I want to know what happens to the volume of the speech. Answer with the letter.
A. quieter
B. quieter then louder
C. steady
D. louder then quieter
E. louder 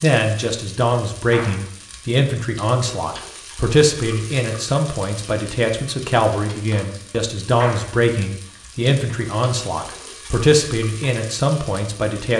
C.